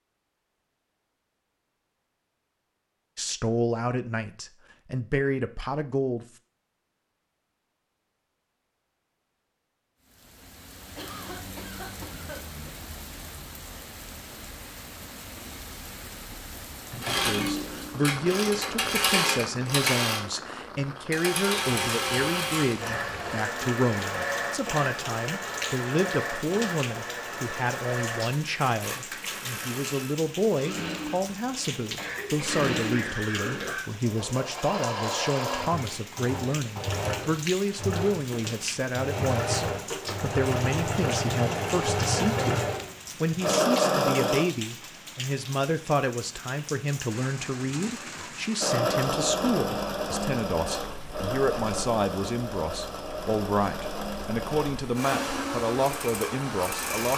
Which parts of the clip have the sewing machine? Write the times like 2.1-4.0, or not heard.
16.9-44.5, 48.6-57.1.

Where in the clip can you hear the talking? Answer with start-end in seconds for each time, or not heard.
3.1-6.2, 17.2-57.1.